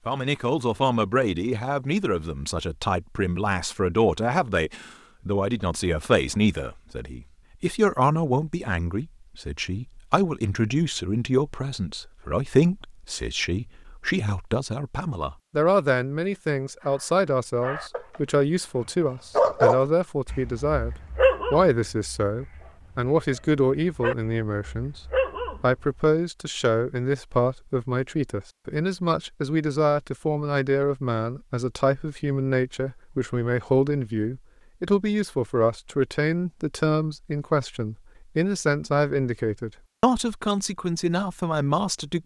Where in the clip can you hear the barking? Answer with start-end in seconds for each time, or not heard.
16.9-18.2, 19.4-26.0.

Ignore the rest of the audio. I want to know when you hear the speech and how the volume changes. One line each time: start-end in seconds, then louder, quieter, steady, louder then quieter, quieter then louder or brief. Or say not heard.
0.1-42.2 steady.